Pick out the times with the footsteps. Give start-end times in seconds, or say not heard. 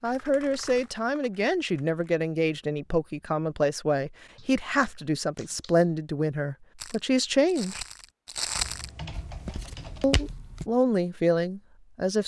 6.8-10.7.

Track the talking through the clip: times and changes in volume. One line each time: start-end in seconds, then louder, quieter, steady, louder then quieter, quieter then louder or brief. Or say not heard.
0.0-7.8 steady
10.0-12.2 brief.